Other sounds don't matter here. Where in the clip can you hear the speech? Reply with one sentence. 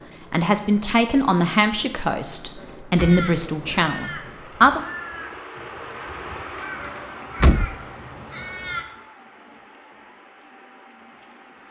You can hear the speech from 0.3 to 4.8 s.